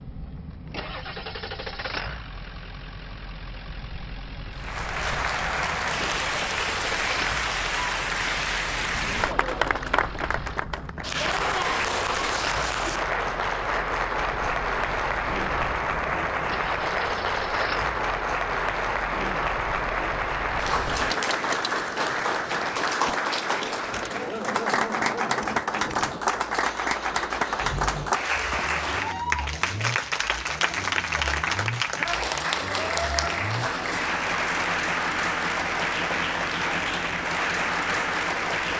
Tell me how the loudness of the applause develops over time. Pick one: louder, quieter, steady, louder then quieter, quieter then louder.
steady.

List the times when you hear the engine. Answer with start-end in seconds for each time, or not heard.
0.0-38.7.